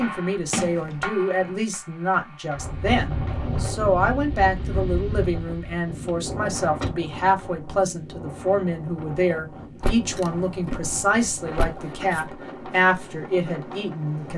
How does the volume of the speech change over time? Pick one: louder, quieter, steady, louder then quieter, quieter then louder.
steady.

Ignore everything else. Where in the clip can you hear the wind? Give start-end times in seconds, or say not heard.
2.5-14.3.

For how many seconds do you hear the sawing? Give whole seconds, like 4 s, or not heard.
not heard.